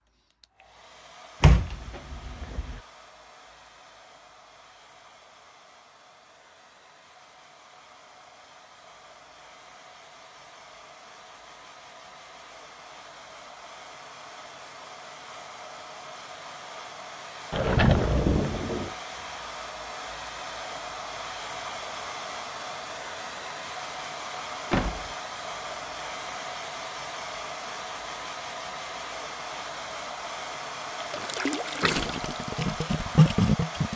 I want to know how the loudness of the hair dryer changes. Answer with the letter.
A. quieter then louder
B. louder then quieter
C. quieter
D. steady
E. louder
E.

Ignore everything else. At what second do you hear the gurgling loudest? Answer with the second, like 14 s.
33 s.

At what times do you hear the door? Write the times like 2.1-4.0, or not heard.
1.4-2.8, 17.5-18.9, 24.7-25.1.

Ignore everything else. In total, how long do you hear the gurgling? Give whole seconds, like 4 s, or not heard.
3 s.